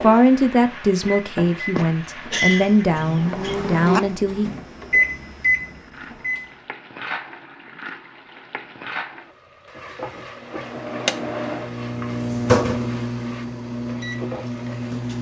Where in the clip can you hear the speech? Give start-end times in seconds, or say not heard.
0.0-4.5.